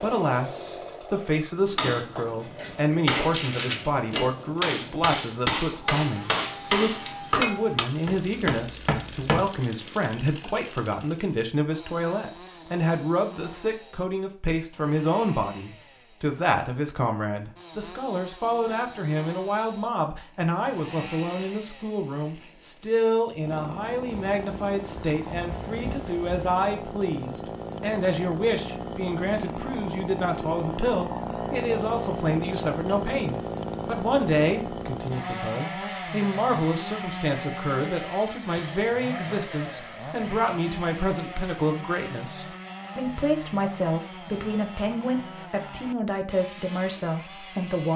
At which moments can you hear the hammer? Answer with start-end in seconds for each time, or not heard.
1.6-9.4.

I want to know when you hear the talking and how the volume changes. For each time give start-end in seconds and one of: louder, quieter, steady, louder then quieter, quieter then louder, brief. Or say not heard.
0.0-47.9 steady.